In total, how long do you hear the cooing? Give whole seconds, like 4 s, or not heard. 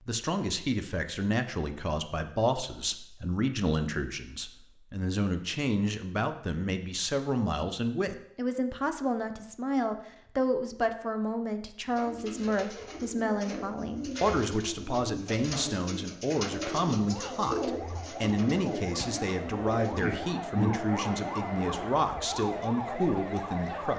10 s.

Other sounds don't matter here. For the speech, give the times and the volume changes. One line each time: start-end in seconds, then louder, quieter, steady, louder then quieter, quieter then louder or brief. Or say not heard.
0.1-23.9 steady.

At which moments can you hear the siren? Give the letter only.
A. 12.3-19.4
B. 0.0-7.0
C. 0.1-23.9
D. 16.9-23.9
D.